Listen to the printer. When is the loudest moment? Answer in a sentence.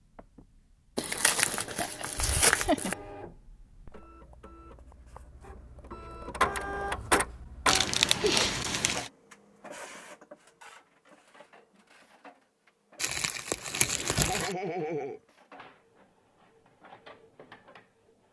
The volume of the printer peaks at 7 seconds.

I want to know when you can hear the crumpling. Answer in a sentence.
You can hear the crumpling from 0.9 to 3.0 s, from 7.7 to 9.1 s and from 13.0 to 14.6 s.